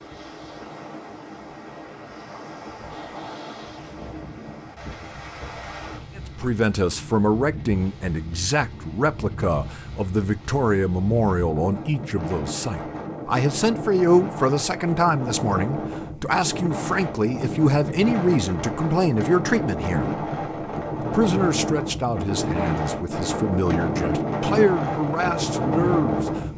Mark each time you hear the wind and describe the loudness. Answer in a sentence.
You can hear the wind from 0.0 to 26.5 s, getting louder.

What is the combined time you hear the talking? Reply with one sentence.
The talking can be heard for 19 seconds in total.